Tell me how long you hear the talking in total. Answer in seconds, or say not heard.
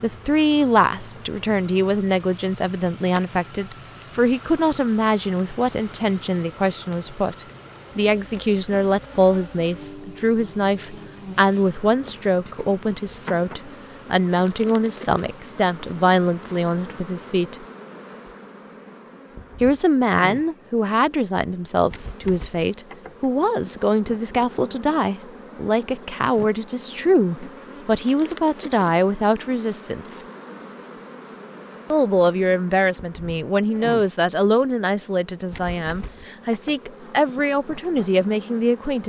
35 s.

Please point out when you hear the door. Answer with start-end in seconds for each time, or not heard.
not heard.